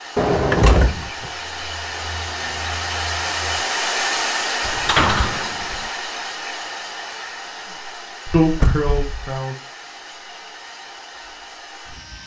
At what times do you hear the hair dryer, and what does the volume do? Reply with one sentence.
The hair dryer can be heard from 0.0 to 12.2 s, getting louder then quieter.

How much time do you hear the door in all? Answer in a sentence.
The door can be heard for 3 seconds in total.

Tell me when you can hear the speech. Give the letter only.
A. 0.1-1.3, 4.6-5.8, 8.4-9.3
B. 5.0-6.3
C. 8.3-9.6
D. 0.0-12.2
C.